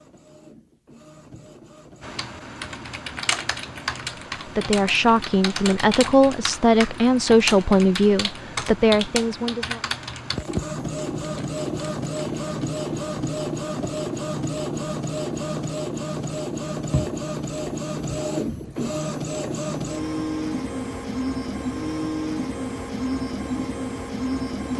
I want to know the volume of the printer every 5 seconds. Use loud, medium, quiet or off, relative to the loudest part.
quiet, quiet, loud, loud, loud.